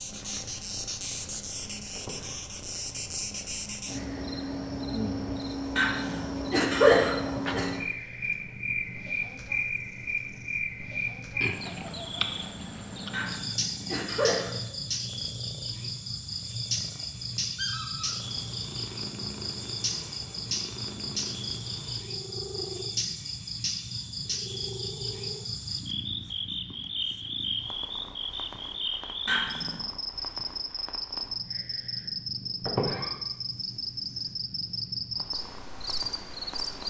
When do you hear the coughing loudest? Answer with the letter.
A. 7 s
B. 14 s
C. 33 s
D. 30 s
A.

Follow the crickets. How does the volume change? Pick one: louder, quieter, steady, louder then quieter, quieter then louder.
steady.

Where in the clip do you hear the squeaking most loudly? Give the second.
33 s.